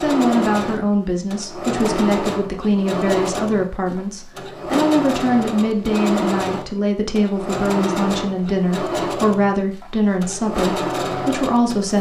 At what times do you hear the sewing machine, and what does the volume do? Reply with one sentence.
You can hear the sewing machine from 0.0 to 11.9 s, at a steady volume.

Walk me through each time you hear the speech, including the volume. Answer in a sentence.
You can hear the speech from 0.0 to 11.9 s, at a steady volume.